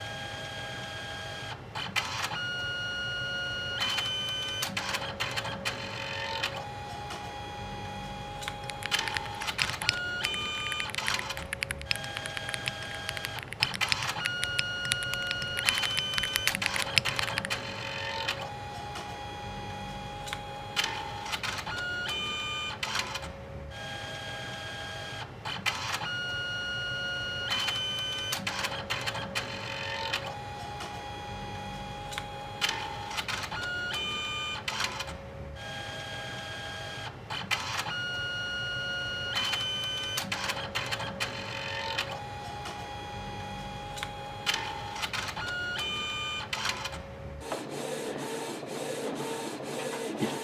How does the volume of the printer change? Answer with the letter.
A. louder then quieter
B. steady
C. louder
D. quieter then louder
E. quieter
B.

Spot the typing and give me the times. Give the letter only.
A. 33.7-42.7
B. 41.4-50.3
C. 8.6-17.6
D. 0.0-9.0
C.